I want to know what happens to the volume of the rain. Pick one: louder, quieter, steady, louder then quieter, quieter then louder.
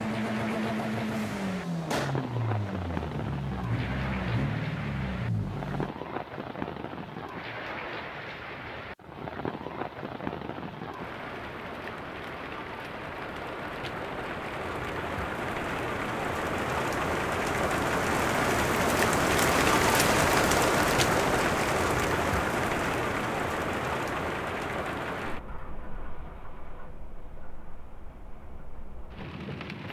louder then quieter.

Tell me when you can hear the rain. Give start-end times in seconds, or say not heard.
0.0-29.8.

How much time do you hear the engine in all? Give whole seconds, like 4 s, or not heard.
6 s.